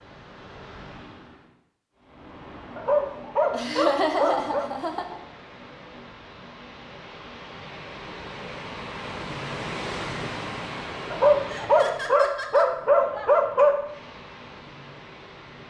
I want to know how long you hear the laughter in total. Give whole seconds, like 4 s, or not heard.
3 s.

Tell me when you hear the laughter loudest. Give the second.
4 s.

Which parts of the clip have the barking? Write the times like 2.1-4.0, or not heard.
2.8-4.7, 11.1-13.9.